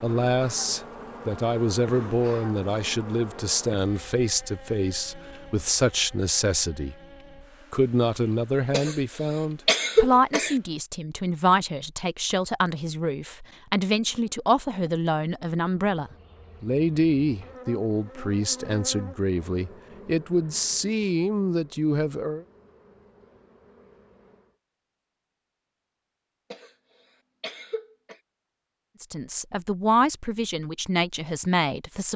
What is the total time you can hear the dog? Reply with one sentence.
The dog can't be heard in this clip.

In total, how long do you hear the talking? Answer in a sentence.
You can hear the talking for 25 seconds altogether.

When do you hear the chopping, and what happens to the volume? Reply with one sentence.
You can't hear the chopping here.